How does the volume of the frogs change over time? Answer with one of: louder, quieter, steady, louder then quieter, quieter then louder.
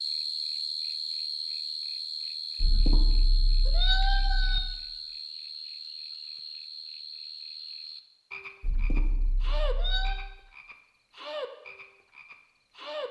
quieter.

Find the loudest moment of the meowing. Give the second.
4 s.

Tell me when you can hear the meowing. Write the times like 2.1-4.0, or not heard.
2.6-4.6, 8.6-10.2.